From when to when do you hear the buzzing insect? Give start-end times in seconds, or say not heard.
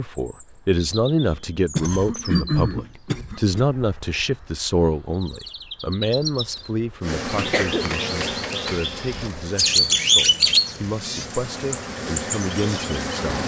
7.0-13.4.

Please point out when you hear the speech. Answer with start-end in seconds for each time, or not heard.
0.0-13.4.